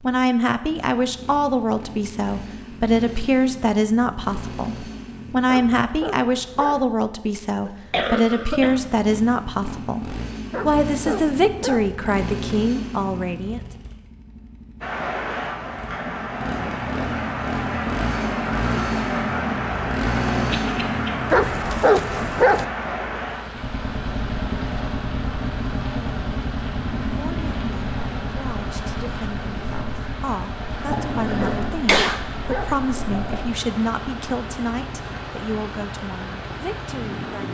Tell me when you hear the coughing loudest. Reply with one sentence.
The volume of the coughing peaks at 32 seconds.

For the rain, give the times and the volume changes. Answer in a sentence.
The rain can be heard from 14.8 to 37.4 s, getting quieter.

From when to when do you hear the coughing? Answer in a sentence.
The coughing can be heard from 7.7 to 8.8 s, from 20.5 to 21.1 s and from 30.9 to 32.2 s.